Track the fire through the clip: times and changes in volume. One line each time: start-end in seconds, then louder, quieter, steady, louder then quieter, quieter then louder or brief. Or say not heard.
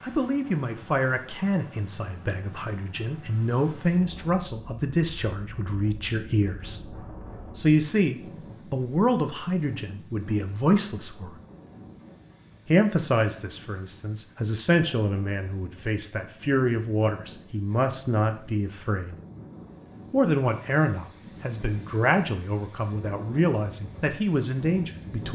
not heard.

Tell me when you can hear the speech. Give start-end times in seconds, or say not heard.
0.0-11.3, 12.7-19.1, 20.1-25.3.